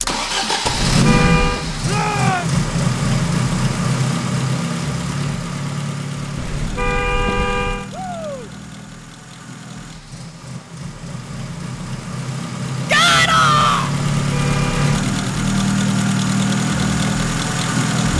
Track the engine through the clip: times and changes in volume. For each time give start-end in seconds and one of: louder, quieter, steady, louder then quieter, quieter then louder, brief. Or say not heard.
0.0-18.1 quieter then louder.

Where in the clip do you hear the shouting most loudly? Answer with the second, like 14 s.
13 s.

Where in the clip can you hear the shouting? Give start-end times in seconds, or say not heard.
1.9-2.5, 7.9-8.5, 12.8-13.9.